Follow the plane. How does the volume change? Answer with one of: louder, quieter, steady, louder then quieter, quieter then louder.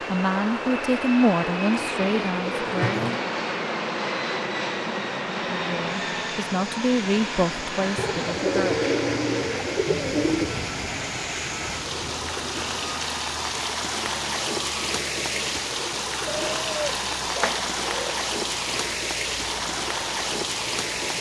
quieter.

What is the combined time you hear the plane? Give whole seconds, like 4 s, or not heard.
21 s.